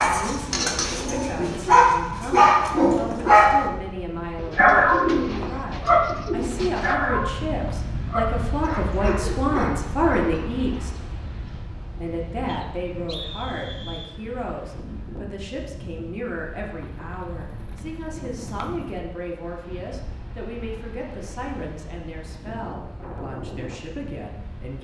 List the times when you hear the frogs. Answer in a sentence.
The frogs can't be heard in this clip.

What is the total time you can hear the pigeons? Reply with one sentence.
You can hear the pigeons for 5 seconds altogether.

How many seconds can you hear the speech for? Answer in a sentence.
The speech can be heard for 24 seconds in total.